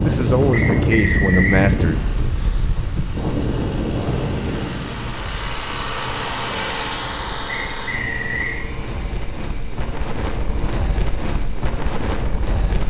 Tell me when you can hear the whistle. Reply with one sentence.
The whistle can be heard from 0.5 to 1.6 s and from 7.5 to 8.6 s.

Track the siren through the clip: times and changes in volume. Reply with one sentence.
You can't hear the siren here.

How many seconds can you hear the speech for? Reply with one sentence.
The speech can be heard for 2 seconds in total.